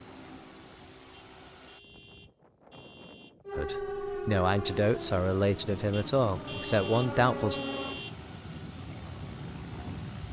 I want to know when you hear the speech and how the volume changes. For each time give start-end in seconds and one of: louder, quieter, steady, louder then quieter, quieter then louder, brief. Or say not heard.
3.5-7.6 steady.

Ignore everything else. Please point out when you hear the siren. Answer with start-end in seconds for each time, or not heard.
3.5-8.0.